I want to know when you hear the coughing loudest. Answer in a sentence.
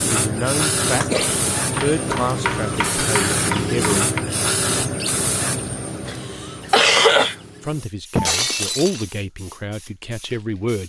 The volume of the coughing peaks at 7 seconds.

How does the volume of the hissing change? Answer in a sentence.
The loudness of the hissing goes down.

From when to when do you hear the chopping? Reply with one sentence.
The chopping can be heard from 1.6 to 4.2 s.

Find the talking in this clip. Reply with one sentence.
You can hear the talking from 0.2 to 4.1 s and from 7.6 to 10.8 s.